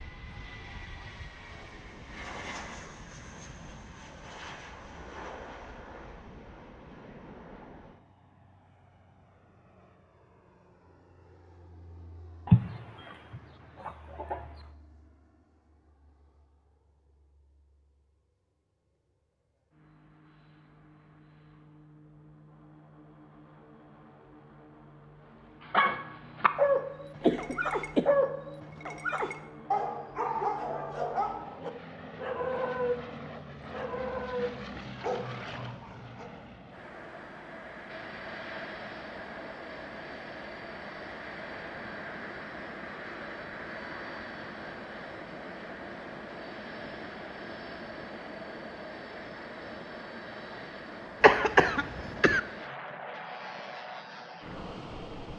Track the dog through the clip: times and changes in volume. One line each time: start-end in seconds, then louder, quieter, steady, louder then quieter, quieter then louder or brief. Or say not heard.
25.7-33.0 quieter
33.7-36.3 brief.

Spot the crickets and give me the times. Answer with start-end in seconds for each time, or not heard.
not heard.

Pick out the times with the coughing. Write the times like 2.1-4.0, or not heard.
12.4-14.4, 27.2-28.1, 51.2-52.4.